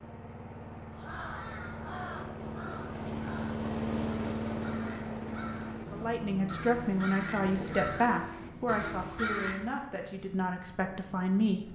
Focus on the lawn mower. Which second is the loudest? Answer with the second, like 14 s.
4 s.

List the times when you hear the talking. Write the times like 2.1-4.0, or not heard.
5.9-11.6.